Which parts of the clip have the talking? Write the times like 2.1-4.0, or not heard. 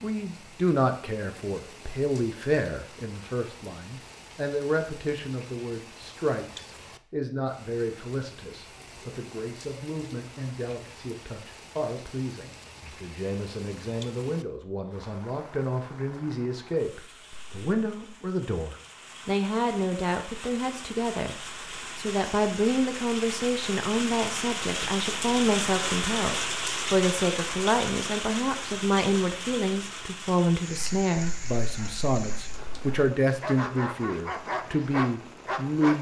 0.0-21.4, 21.9-35.9.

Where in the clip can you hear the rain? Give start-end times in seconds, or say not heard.
0.0-35.9.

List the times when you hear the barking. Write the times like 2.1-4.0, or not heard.
30.7-35.9.